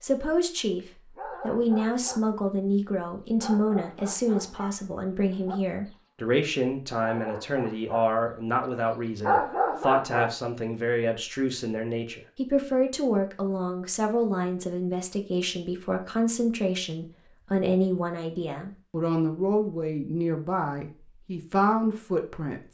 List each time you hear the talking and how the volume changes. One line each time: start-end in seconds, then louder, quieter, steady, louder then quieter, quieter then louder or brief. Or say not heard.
0.0-22.6 steady.